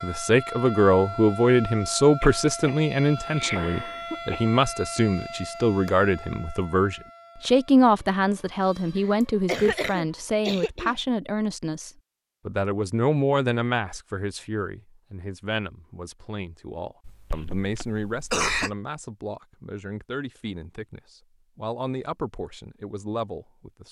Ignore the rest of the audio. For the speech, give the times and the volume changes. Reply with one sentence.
The speech can be heard from 0.0 to 23.8 s, getting quieter.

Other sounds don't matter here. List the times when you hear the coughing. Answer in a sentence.
You can hear the coughing from 2.2 to 4.5 s, from 9.1 to 10.9 s and from 17.1 to 18.7 s.